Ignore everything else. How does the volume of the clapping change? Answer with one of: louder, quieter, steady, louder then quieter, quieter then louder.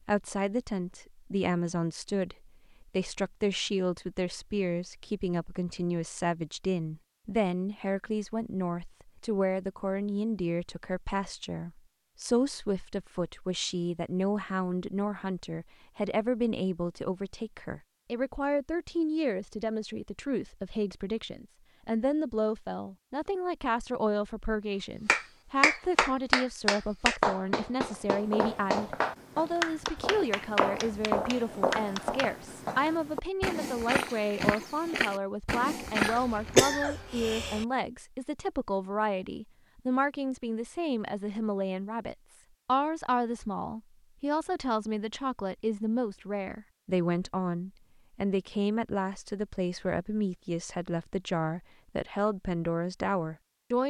quieter.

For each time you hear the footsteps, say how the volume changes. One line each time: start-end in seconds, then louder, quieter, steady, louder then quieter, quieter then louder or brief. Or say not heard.
27.8-36.6 louder.